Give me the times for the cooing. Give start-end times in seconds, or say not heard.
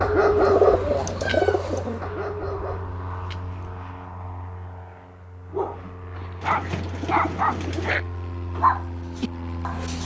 0.3-2.0, 6.4-8.0.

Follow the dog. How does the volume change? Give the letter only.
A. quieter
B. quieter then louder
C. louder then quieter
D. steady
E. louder
B.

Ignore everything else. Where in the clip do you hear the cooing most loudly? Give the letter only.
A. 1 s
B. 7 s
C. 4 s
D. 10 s
A.